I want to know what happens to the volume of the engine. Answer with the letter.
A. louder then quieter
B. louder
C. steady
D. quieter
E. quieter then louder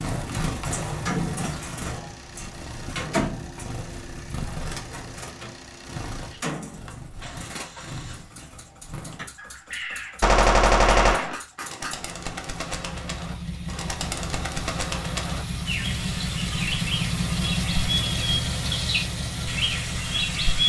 B.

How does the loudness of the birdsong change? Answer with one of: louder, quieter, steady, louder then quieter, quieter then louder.
quieter then louder.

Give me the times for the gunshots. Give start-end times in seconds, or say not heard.
10.2-11.3.